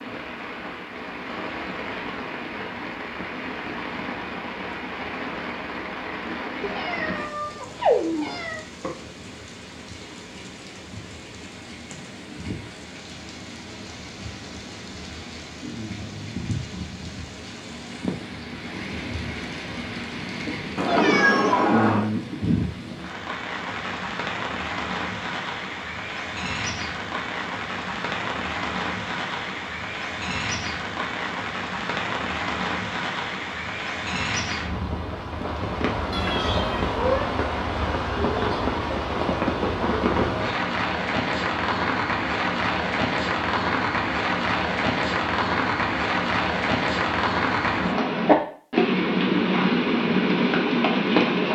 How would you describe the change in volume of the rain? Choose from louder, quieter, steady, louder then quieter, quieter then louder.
louder.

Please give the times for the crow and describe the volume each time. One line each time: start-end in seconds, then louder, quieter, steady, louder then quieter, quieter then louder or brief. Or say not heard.
not heard.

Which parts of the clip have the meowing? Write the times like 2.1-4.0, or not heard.
6.6-8.6, 20.8-22.1, 36.1-37.3.